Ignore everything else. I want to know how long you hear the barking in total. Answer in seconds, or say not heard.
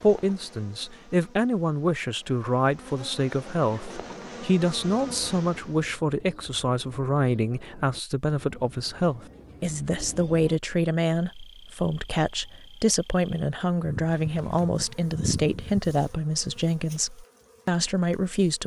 not heard.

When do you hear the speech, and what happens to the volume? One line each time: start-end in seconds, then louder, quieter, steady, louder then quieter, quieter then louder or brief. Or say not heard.
0.0-18.6 steady.